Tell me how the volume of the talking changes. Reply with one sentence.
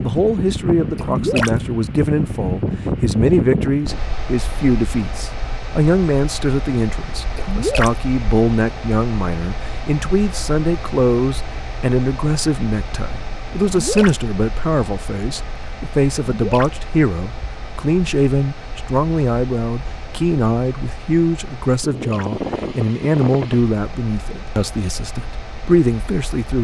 The loudness of the talking stays about the same.